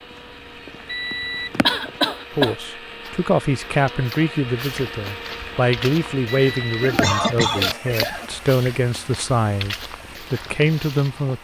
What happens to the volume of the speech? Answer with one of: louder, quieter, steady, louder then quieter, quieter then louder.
steady.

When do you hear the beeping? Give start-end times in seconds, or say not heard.
0.8-1.6, 6.3-7.4.